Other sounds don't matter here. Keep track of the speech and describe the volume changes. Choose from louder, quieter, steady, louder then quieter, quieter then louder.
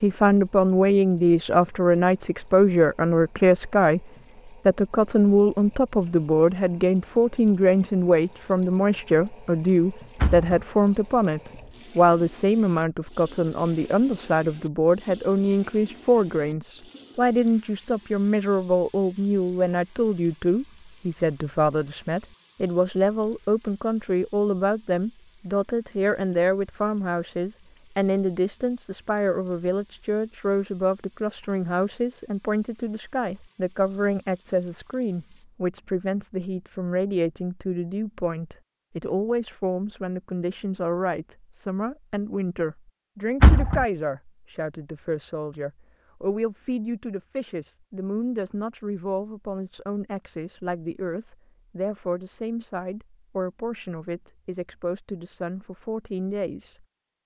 quieter.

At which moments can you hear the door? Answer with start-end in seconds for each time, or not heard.
10.2-10.6, 43.4-43.9.